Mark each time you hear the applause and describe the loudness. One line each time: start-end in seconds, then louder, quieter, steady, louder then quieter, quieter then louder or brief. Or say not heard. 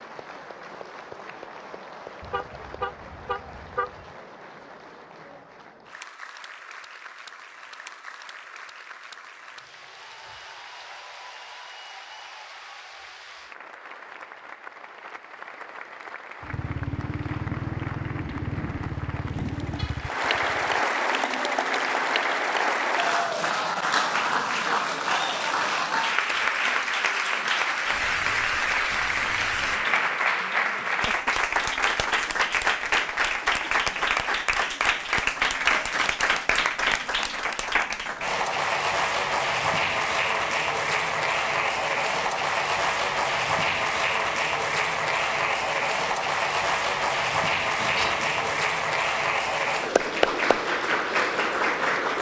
0.0-52.1 louder.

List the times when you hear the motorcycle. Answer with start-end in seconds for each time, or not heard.
16.4-20.9.